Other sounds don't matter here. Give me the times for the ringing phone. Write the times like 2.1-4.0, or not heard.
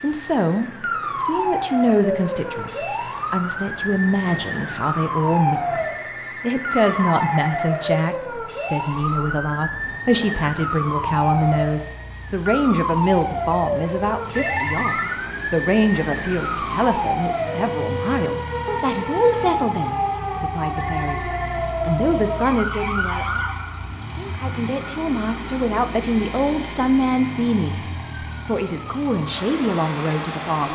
6.0-7.7, 14.3-15.2, 20.8-21.8.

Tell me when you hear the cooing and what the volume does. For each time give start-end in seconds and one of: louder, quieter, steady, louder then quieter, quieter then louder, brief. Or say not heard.
not heard.